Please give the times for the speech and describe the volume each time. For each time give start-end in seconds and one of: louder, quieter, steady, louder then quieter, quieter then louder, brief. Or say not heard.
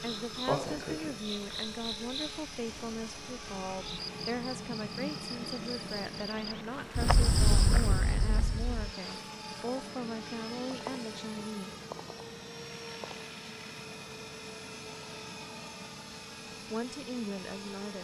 0.0-11.8 steady
16.7-17.9 brief.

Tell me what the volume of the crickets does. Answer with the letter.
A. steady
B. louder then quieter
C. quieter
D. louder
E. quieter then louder
E.